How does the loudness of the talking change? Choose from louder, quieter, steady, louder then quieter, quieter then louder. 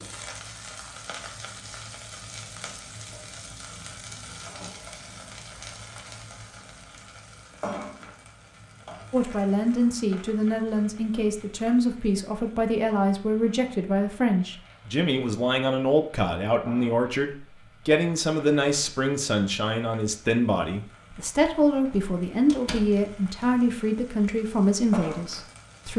steady.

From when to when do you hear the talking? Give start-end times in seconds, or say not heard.
9.1-25.9.